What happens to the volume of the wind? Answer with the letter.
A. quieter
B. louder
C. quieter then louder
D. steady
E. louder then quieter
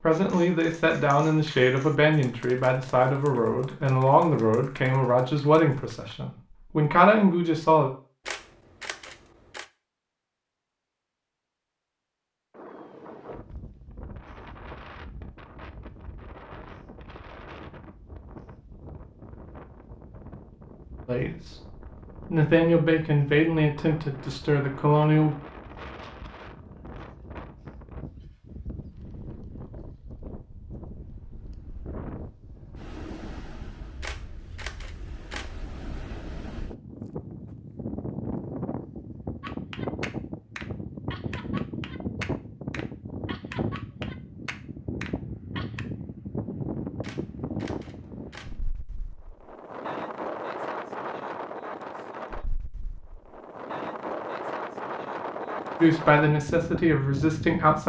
B.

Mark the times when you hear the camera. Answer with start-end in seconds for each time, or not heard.
8.2-9.7, 34.0-35.6, 47.0-48.6.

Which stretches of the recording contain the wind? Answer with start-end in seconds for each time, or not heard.
12.5-57.8.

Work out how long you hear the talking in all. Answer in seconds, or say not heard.
14 s.